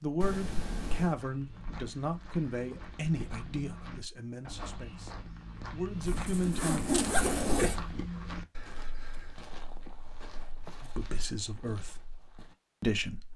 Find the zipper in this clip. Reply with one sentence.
The zipper can be heard from 6.0 to 7.8 s.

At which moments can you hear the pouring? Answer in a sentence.
The pouring can be heard from 0.2 to 1.1 s and from 7.2 to 7.8 s.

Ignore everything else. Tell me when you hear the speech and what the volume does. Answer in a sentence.
You can hear the speech from 0.0 to 6.8 s, getting quieter then louder; briefly from 10.8 to 12.0 s; and briefly from 12.8 to 13.3 s.